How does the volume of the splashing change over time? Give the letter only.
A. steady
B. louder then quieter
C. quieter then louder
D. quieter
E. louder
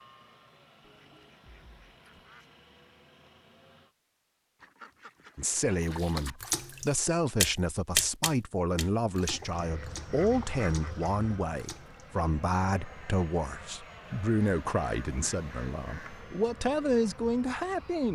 B.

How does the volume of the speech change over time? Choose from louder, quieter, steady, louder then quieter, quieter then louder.
steady.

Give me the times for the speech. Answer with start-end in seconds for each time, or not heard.
5.3-18.1.